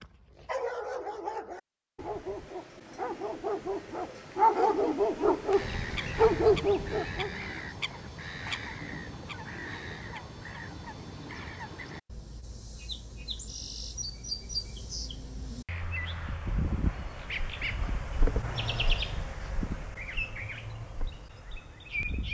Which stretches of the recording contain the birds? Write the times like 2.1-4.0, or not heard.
5.5-22.2.